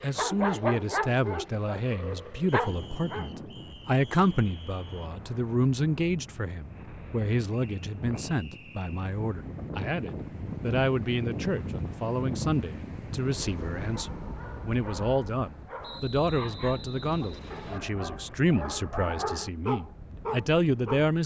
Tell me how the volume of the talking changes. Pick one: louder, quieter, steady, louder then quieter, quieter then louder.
steady.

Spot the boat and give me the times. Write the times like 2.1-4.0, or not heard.
not heard.